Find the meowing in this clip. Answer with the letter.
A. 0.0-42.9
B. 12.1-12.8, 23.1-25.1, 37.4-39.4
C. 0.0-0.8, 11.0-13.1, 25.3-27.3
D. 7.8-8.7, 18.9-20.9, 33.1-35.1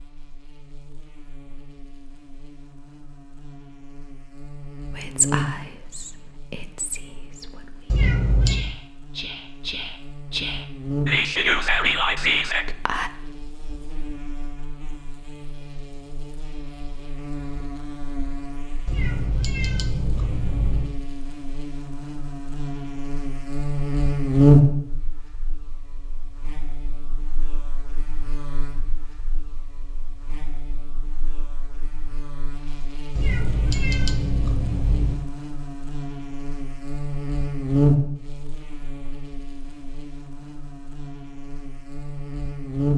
D.